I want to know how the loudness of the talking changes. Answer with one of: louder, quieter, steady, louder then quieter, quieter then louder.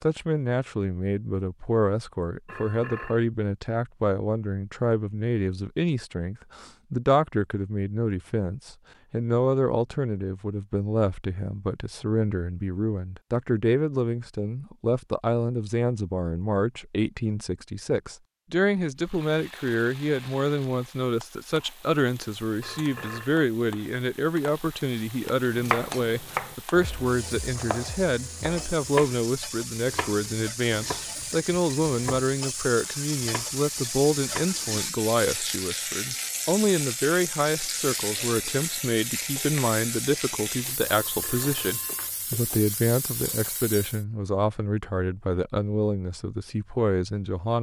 steady.